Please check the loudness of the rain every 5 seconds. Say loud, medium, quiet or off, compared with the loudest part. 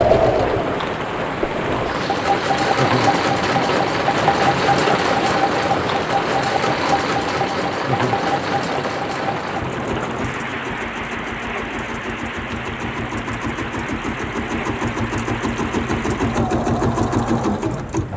loud, loud, medium, medium.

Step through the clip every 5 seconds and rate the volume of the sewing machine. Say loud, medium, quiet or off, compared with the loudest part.
loud, loud, medium, loud.